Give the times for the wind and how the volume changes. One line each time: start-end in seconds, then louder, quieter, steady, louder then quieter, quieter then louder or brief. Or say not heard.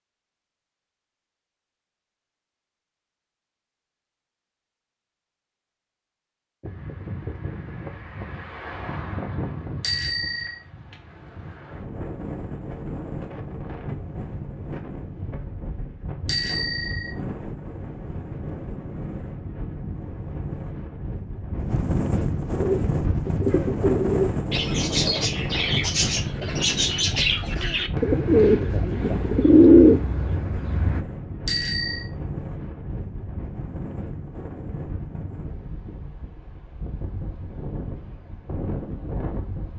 6.6-39.7 louder then quieter.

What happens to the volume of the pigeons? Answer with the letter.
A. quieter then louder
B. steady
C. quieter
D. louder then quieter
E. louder
E.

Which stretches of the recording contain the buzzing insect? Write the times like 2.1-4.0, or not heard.
not heard.